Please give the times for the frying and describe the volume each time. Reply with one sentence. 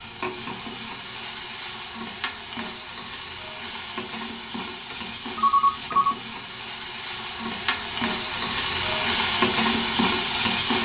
You can hear the frying from 0.0 to 10.8 s, getting louder.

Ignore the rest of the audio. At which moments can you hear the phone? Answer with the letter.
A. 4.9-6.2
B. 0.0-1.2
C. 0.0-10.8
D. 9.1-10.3
A.